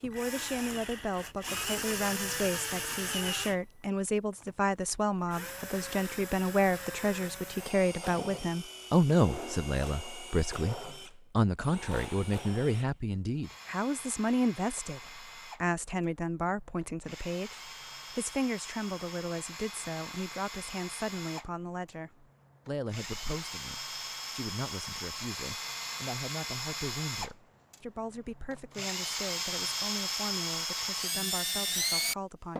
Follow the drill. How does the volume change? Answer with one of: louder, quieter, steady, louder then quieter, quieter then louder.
quieter then louder.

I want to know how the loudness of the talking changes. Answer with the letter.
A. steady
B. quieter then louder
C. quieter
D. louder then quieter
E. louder
C.